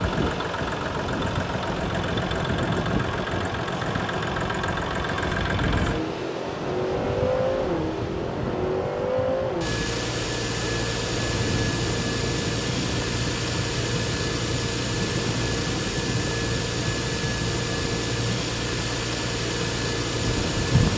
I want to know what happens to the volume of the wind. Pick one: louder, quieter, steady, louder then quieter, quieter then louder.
steady.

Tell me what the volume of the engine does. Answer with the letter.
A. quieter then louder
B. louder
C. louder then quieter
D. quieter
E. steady
E.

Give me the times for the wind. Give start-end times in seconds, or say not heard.
0.0-20.9.